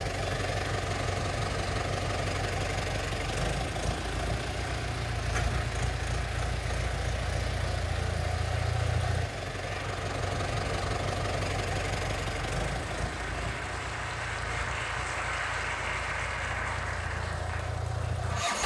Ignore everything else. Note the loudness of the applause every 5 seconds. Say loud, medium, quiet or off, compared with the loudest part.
medium, medium, loud, loud.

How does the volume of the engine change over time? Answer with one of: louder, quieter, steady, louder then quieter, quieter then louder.
quieter.